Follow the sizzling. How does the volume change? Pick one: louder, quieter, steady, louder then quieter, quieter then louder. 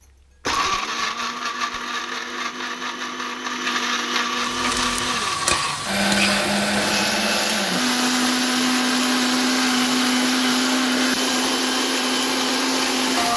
steady.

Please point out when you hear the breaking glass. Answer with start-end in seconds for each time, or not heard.
not heard.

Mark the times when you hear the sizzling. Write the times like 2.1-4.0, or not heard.
4.3-13.3.